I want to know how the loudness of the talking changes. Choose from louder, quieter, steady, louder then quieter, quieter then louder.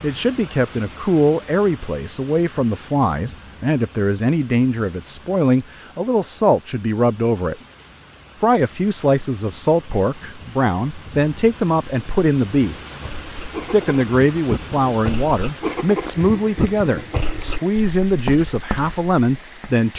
steady.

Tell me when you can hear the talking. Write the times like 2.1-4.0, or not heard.
0.0-7.5, 8.4-12.8, 13.7-19.9.